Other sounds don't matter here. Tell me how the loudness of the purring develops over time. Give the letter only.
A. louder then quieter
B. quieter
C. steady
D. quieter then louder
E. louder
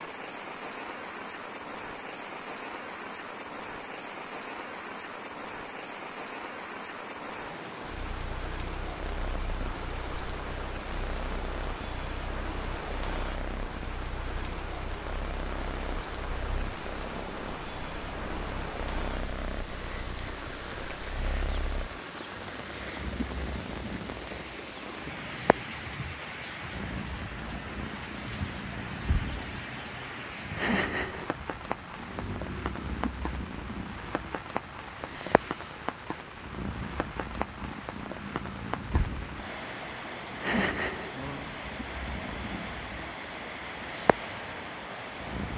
E.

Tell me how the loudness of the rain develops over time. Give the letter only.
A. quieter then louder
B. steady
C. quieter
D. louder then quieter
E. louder
B.